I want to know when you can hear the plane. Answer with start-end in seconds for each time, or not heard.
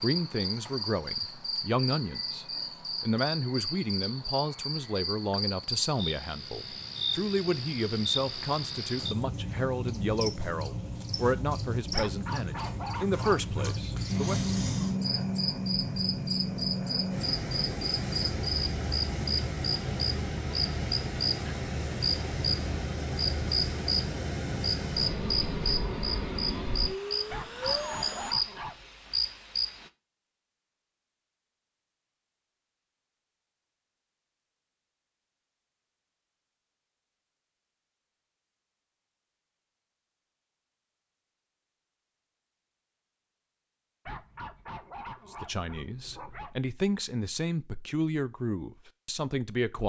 14.1-28.4.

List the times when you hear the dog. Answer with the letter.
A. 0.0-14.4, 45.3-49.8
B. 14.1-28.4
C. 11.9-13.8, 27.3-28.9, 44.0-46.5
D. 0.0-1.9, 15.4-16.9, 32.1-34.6
C.